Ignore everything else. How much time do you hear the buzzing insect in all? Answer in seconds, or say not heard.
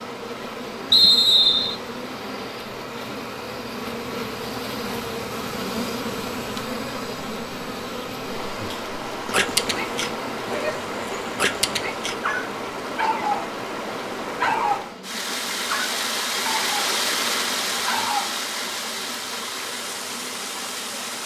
21 s.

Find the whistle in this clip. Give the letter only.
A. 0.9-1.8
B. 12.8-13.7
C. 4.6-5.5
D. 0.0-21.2
A.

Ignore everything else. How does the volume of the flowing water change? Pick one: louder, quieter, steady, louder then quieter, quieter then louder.
louder.